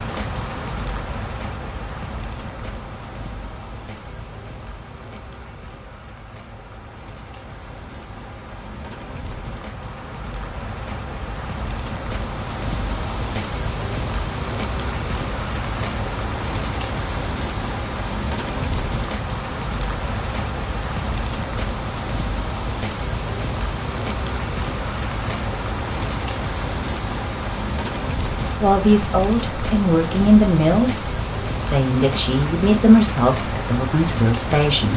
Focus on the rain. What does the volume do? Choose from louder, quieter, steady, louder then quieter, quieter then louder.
louder.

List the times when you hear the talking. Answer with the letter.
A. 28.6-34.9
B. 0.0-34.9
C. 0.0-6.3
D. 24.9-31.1
A.